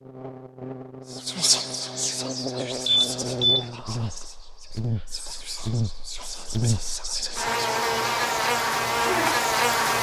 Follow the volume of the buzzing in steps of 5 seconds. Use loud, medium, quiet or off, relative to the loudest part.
medium, loud.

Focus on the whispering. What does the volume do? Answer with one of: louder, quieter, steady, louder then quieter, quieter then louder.
quieter then louder.